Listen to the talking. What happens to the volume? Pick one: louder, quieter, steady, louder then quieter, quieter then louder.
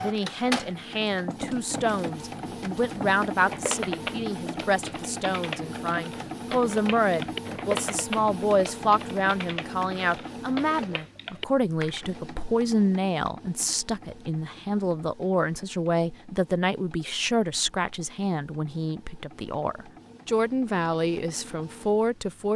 steady.